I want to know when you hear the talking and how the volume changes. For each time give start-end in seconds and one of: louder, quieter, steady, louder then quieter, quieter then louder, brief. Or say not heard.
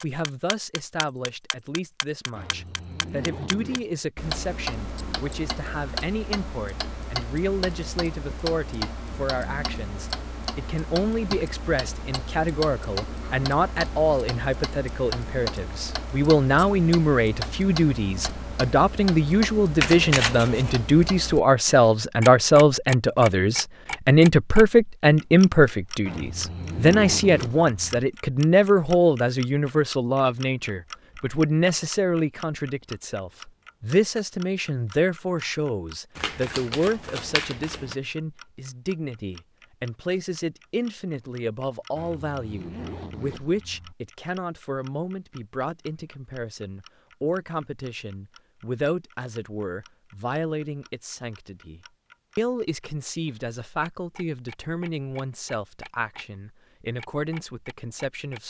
0.0-58.4 louder then quieter.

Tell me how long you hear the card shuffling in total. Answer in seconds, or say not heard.
3 s.